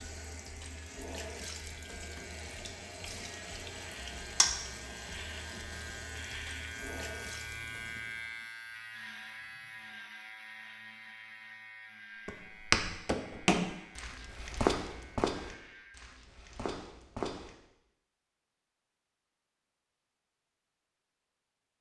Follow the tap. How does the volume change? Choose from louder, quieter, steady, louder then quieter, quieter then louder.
louder then quieter.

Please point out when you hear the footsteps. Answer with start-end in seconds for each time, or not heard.
12.2-17.6.